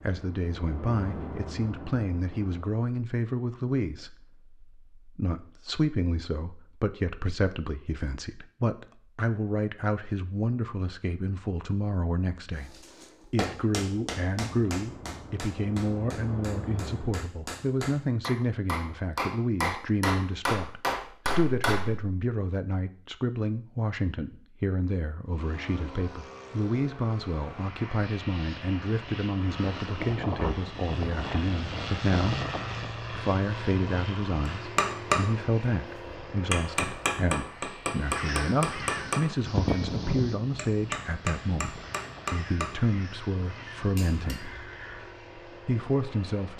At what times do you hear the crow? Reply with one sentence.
You can hear the crow from 38.0 to 45.2 s.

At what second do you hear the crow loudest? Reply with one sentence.
The loudest moment of the crow is at 40 seconds.